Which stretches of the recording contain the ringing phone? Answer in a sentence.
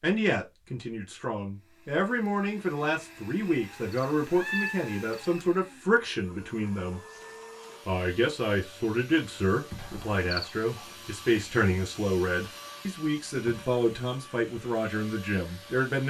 You can't hear the ringing phone here.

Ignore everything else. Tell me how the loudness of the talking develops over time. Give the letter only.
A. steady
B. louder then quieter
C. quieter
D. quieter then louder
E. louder
A.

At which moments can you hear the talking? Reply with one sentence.
You can hear the talking from 0.0 to 7.0 s and from 7.8 to 16.0 s.